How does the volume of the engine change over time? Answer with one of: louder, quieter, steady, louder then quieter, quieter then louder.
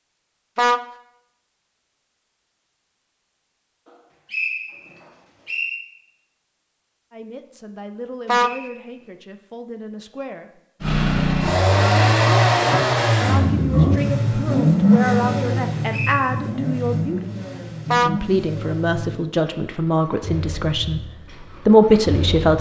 quieter.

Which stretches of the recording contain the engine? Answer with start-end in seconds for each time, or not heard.
10.8-22.5.